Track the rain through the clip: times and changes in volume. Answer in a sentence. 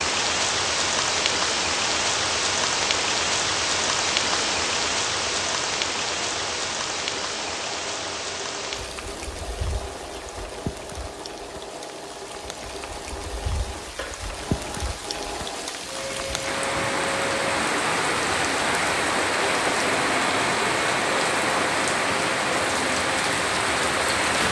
You can hear the rain from 0.0 to 24.4 s, getting quieter then louder.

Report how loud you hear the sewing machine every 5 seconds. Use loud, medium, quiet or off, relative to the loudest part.
medium, medium, medium, loud, loud.